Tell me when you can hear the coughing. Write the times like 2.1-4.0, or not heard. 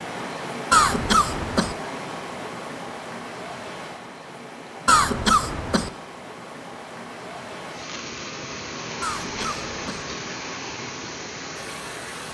0.7-1.8, 4.8-5.9, 9.0-10.1.